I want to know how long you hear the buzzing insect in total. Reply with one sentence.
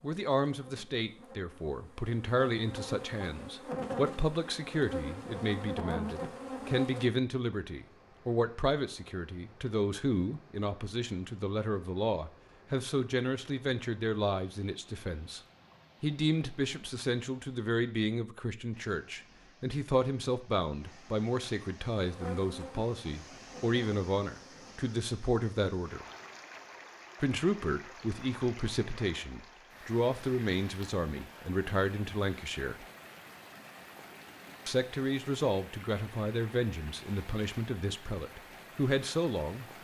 The buzzing insect can be heard for 10 seconds in total.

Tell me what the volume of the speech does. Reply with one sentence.
The loudness of the speech stays about the same.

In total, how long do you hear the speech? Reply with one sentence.
You can hear the speech for 36 seconds altogether.